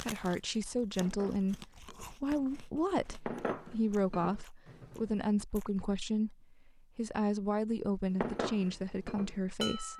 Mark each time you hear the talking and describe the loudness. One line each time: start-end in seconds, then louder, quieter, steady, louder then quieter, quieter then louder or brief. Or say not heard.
0.1-9.9 steady.